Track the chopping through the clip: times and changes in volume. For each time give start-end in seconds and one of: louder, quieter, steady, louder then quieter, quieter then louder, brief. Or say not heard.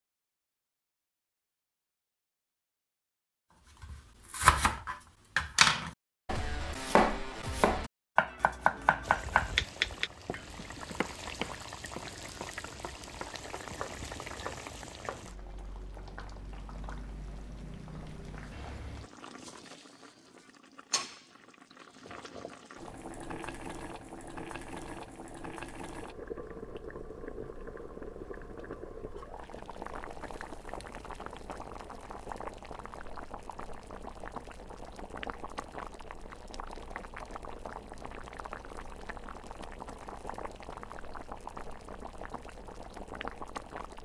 3.8-15.3 quieter.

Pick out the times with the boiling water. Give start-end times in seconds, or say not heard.
9.0-44.0.